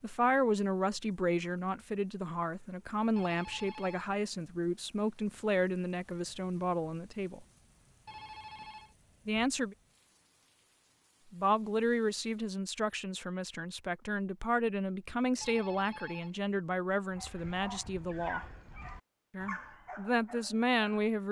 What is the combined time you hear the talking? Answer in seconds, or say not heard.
17 s.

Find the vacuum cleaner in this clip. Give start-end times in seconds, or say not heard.
not heard.